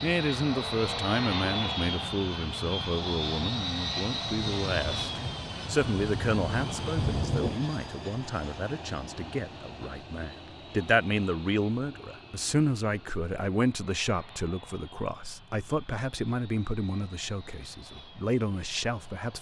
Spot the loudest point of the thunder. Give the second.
7 s.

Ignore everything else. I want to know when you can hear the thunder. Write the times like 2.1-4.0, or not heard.
4.3-7.7.